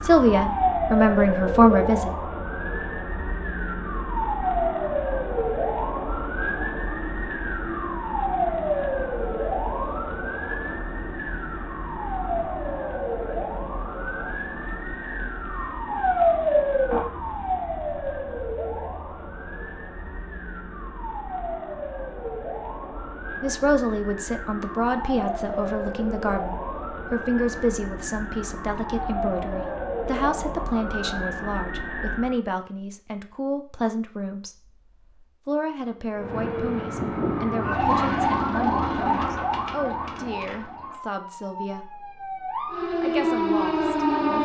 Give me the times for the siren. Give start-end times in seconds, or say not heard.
0.0-32.4, 36.1-44.4.